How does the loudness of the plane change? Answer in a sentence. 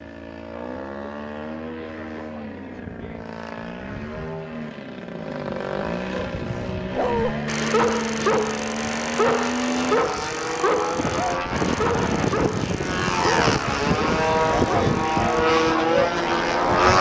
The volume of the plane goes up.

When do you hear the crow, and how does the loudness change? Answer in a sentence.
You can't hear the crow here.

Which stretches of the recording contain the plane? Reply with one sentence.
The plane can be heard from 0.0 to 16.9 s.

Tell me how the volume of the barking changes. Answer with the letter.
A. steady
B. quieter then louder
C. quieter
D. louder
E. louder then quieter
C.